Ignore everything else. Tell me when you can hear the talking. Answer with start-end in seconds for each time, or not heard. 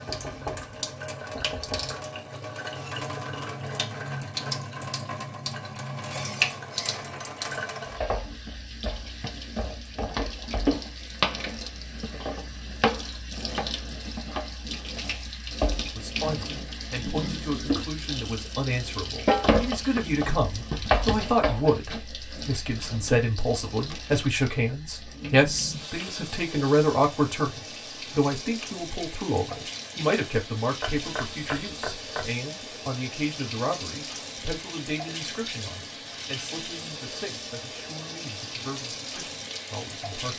15.8-40.3.